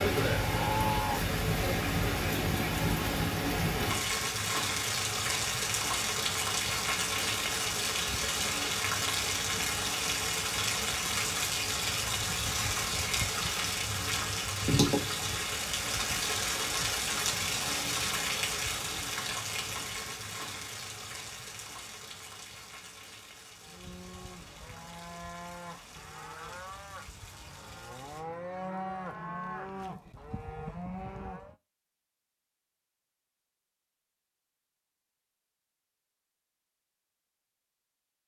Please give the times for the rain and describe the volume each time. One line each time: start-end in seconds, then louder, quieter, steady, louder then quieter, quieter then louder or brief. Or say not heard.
0.0-28.2 quieter.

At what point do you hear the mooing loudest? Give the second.
1 s.